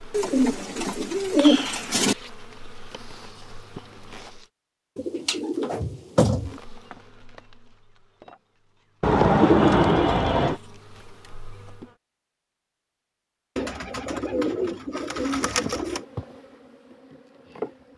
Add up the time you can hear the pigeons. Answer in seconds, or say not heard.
8 s.